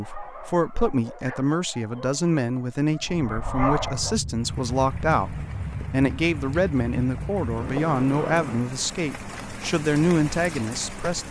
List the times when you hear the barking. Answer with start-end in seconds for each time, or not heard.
0.0-4.2.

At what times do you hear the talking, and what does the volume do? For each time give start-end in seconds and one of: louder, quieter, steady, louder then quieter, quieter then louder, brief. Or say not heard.
0.0-11.2 steady.